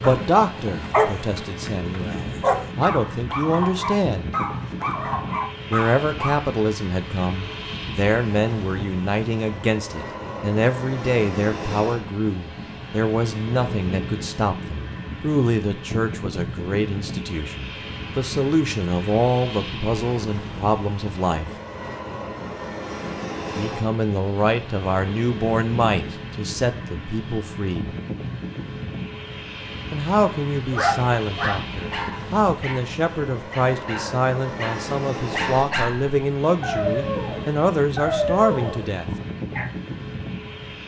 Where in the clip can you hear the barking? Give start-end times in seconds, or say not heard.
0.0-6.3, 30.6-39.7.